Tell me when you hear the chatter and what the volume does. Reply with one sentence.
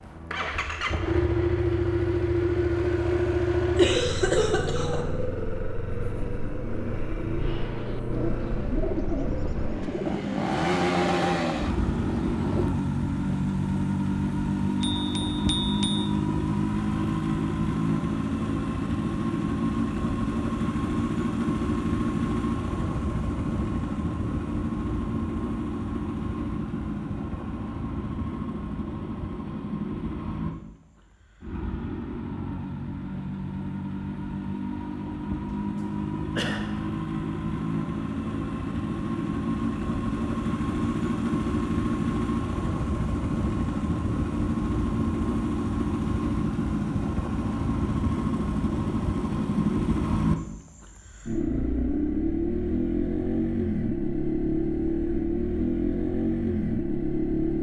The chatter can't be heard in this clip.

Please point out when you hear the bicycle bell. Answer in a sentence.
You can hear the bicycle bell from 14.8 to 16.1 s.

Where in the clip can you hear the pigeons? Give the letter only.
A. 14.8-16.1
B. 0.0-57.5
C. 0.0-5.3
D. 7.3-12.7
D.